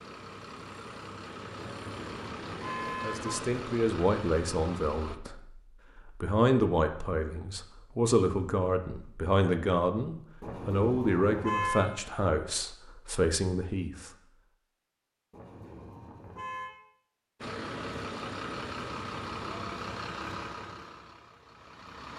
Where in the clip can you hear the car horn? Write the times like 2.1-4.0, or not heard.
1.6-3.4, 10.4-11.9, 15.3-16.7.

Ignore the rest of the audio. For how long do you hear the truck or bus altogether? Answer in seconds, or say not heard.
10 s.